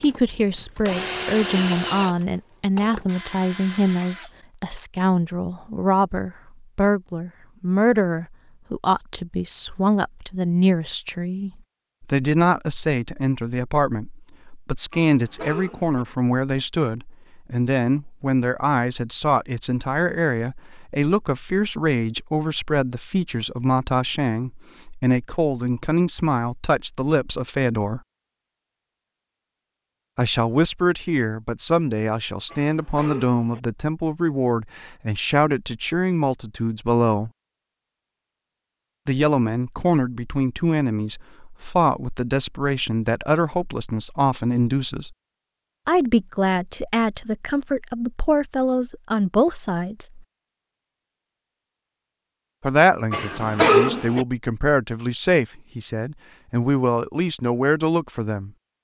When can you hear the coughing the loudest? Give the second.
54 s.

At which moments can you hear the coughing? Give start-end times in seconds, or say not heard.
14.9-16.1, 32.5-33.6, 53.1-54.2.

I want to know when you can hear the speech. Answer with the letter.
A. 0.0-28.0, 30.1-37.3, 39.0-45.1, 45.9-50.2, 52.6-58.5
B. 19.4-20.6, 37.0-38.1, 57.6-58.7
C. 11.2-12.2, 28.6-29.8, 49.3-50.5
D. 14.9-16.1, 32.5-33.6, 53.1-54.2
A.